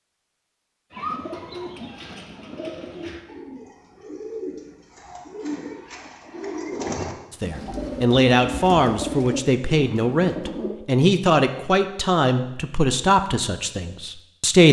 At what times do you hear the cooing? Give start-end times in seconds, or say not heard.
0.9-10.8.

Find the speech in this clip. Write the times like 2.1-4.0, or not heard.
7.3-14.6.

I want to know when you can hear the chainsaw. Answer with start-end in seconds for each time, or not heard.
not heard.